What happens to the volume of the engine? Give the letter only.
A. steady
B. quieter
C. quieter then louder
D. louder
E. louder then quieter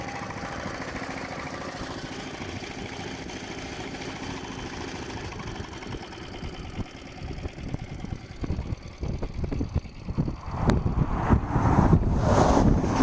B.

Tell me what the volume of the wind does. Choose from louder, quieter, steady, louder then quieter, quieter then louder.
louder.